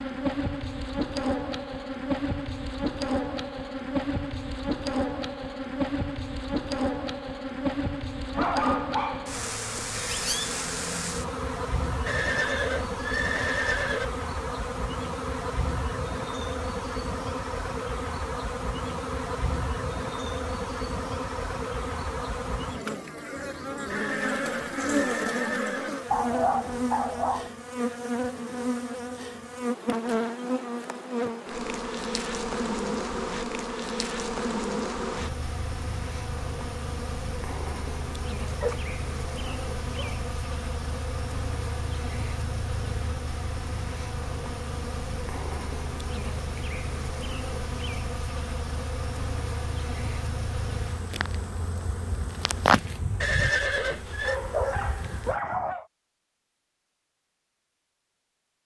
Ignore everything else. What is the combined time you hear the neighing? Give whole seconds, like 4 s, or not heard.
5 s.